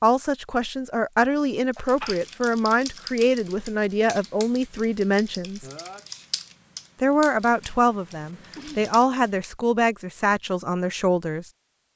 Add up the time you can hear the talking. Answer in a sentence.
You can hear the talking for 10 seconds altogether.